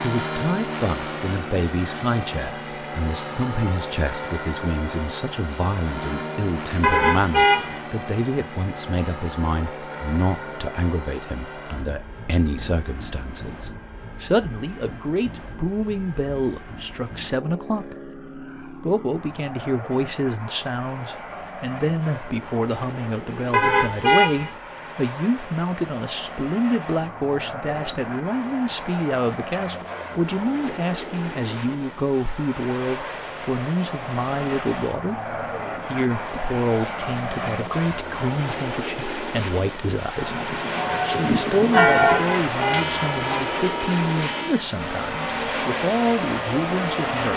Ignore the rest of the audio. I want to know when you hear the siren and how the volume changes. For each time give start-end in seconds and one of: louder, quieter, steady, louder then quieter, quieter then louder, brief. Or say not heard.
not heard.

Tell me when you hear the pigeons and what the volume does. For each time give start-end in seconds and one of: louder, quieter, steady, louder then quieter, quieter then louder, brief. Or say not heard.
not heard.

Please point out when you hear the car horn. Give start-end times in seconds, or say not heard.
6.8-7.8, 23.5-24.6, 42.0-43.5.